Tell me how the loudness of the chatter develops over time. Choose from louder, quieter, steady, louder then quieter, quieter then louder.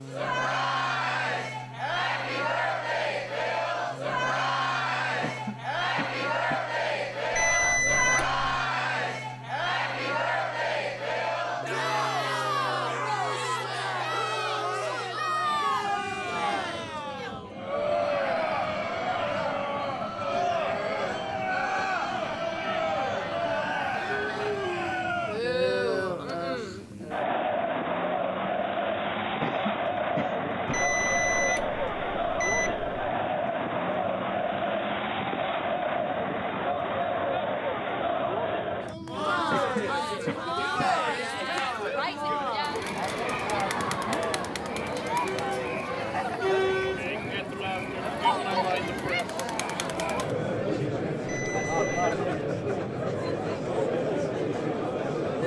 steady.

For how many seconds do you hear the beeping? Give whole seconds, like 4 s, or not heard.
4 s.